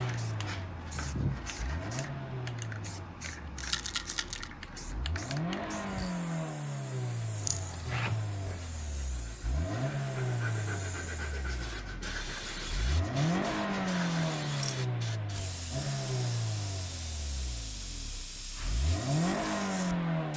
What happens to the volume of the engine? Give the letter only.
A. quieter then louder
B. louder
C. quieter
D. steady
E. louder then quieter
B.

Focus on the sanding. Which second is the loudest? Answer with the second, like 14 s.
1 s.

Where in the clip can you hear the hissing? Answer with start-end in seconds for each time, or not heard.
0.0-20.3.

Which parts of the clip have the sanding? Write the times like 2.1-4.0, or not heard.
0.0-2.1, 7.2-14.7.